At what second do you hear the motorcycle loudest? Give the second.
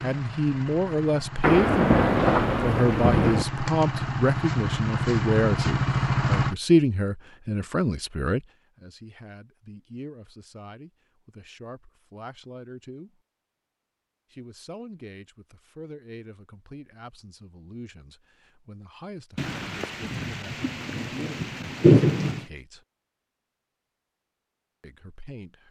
6 s.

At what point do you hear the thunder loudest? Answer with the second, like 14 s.
22 s.